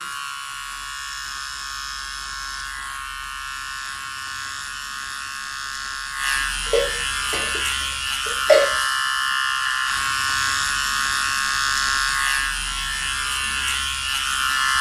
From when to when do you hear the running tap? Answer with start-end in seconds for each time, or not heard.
not heard.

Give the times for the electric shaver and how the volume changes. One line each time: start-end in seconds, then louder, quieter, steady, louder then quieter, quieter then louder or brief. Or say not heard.
0.0-14.7 louder.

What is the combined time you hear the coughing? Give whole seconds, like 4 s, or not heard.
2 s.